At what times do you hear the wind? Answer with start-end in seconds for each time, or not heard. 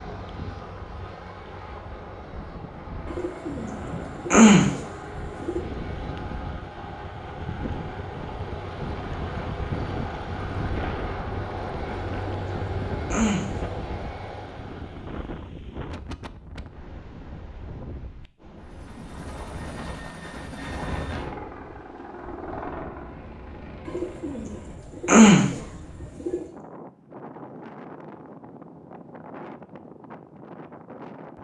0.0-31.4.